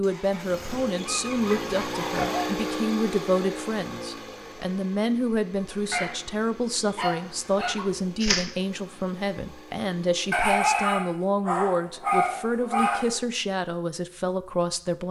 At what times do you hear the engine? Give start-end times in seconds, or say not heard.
0.0-10.4.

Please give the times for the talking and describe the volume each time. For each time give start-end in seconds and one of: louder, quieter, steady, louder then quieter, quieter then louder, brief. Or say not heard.
0.0-15.0 steady.